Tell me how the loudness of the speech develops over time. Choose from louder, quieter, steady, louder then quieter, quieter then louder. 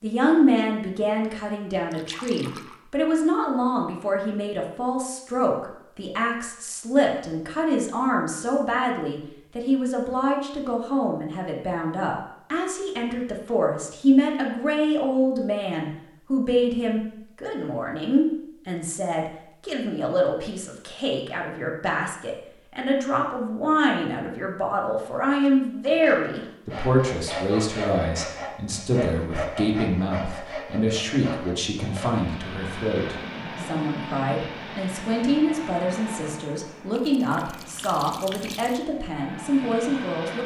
steady.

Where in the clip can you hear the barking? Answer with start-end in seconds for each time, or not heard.
not heard.